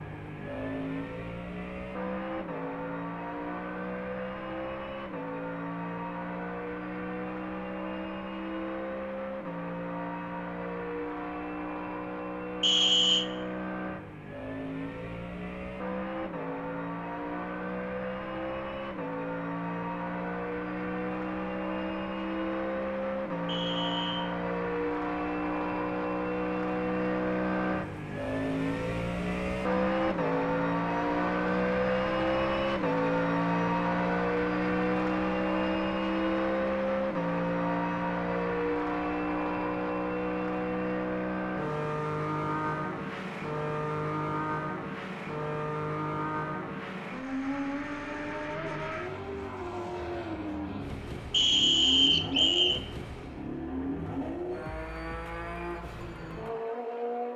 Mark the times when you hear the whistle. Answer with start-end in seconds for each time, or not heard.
12.6-13.2, 23.4-24.3, 51.3-52.8.